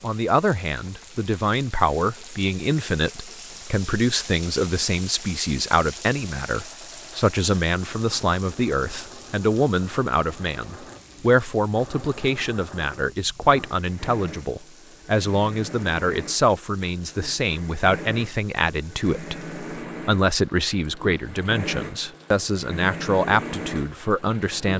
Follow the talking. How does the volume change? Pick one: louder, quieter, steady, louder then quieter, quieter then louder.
steady.